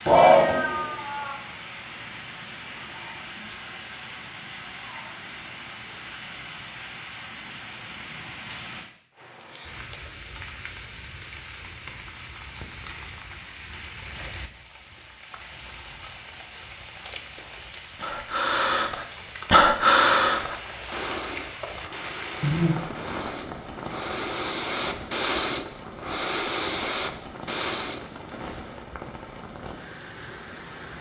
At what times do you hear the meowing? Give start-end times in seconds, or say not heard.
0.1-1.4.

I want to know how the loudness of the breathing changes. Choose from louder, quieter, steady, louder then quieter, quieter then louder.
quieter then louder.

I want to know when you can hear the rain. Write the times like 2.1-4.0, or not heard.
0.0-30.9.